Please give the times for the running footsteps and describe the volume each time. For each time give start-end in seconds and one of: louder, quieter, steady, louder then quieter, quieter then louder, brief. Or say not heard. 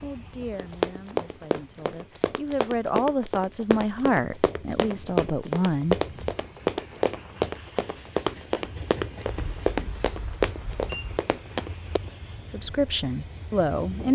0.6-12.0 steady.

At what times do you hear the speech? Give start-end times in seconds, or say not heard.
0.0-6.0, 12.4-14.1.